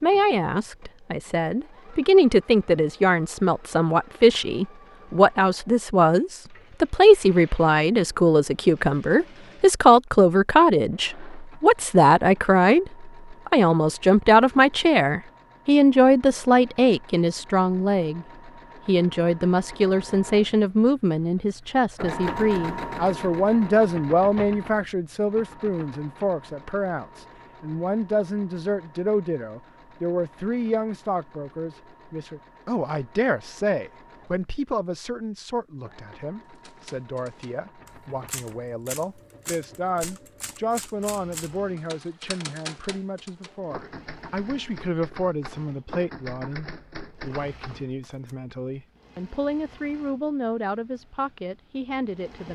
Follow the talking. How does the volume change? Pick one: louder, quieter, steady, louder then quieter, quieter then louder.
quieter.